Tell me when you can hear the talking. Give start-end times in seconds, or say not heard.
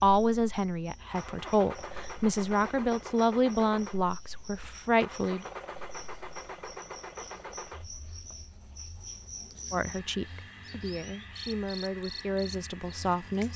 0.0-5.5, 9.7-13.5.